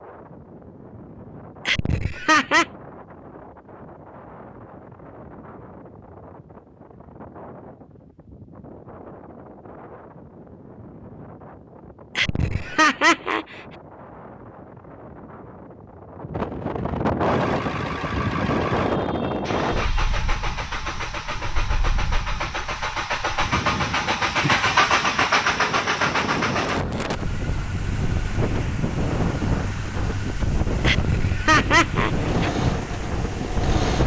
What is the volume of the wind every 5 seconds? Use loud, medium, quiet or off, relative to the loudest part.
quiet, quiet, quiet, loud, medium, loud, loud.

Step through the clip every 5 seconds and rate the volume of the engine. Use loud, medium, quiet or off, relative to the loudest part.
off, off, off, medium, loud, loud, medium.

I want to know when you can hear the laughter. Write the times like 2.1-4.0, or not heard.
1.6-2.6, 12.2-13.6, 30.8-32.5.